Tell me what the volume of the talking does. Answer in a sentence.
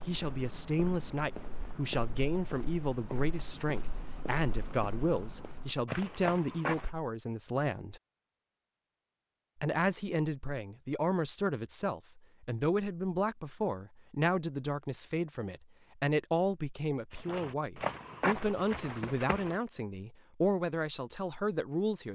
The loudness of the talking stays about the same.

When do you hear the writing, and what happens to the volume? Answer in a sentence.
The writing can't be heard in this clip.